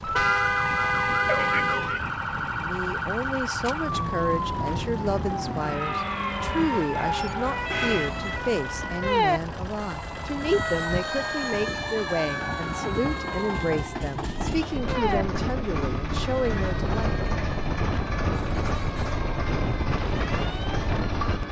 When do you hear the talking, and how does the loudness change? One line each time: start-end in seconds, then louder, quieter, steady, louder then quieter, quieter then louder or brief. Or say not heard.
2.4-17.1 steady.